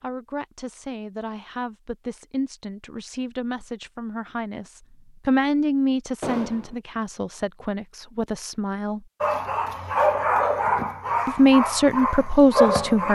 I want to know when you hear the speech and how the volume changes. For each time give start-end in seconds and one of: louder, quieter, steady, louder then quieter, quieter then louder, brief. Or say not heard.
0.0-9.0 louder then quieter
11.2-13.1 brief.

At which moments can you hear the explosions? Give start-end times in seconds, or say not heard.
6.2-6.8.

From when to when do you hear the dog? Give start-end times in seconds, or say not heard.
9.2-13.1.